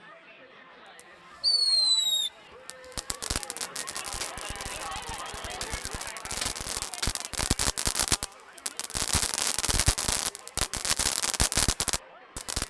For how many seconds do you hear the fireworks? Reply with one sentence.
The fireworks can be heard for 12 seconds in total.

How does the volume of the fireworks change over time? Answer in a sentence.
The volume of the fireworks goes down, then up.